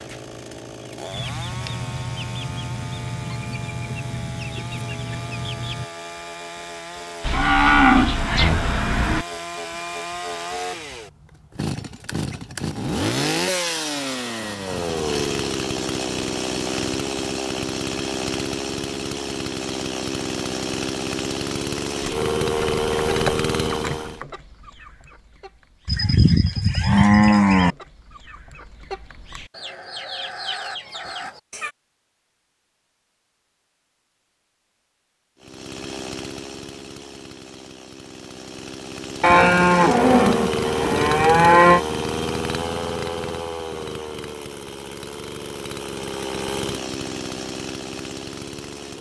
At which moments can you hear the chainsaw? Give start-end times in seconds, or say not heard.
0.0-24.2, 35.4-48.9.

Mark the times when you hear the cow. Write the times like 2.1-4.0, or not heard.
7.2-9.2, 25.9-27.8, 39.2-41.8.